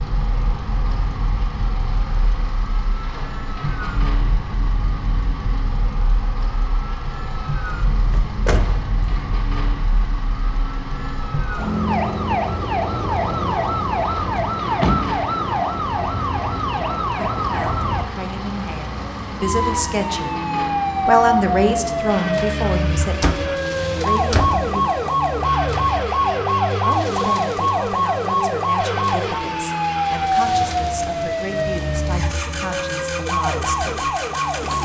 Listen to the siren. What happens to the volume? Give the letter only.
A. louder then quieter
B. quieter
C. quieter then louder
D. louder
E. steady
D.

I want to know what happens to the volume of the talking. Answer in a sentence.
The volume of the talking goes down.